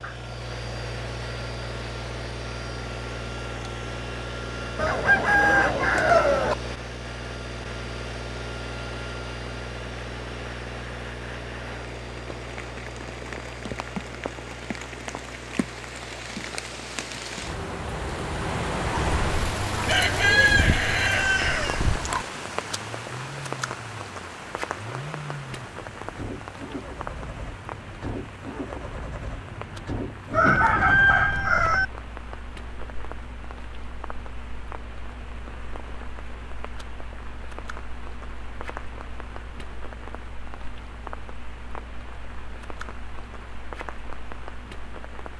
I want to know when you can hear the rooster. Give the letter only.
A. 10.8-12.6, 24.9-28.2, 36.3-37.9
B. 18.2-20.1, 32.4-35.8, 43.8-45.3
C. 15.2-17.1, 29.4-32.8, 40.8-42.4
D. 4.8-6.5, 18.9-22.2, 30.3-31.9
D.